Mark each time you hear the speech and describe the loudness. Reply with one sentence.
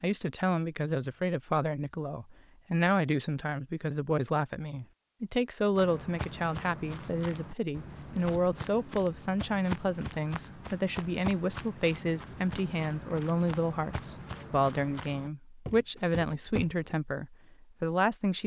The speech can be heard from 0.0 to 18.4 s, at a steady volume.